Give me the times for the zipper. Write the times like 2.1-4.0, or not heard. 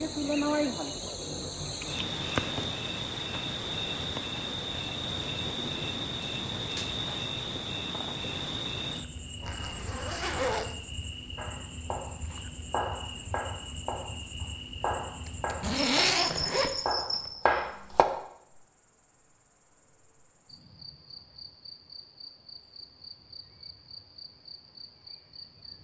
9.4-10.8, 15.2-17.2.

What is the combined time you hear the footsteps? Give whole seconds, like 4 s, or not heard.
not heard.